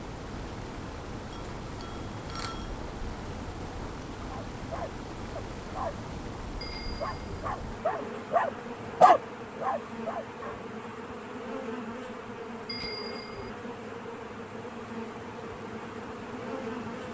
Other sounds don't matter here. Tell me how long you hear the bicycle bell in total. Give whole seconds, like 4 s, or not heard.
3 s.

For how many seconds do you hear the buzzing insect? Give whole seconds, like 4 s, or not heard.
17 s.